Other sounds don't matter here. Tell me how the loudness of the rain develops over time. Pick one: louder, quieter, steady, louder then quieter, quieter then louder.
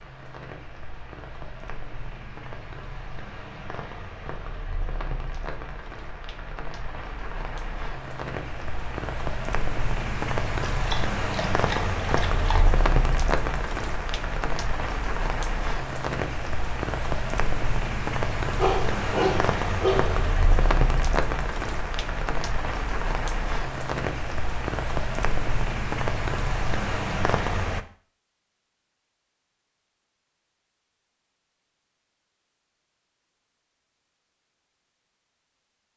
louder.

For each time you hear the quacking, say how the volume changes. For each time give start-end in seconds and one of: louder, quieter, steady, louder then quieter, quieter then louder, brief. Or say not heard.
not heard.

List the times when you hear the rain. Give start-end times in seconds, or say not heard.
0.0-27.9.